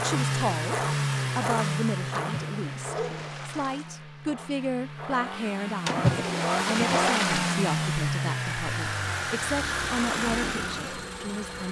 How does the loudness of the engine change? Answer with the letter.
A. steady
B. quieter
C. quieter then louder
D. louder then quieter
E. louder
C.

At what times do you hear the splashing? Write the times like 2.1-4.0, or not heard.
2.1-4.0, 5.8-7.7.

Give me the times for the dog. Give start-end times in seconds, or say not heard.
2.9-3.4.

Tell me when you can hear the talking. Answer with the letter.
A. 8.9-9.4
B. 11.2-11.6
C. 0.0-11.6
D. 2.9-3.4
C.